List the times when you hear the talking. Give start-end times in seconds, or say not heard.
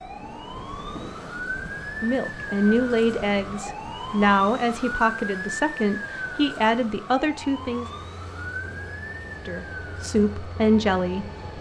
2.0-7.9, 9.4-11.5.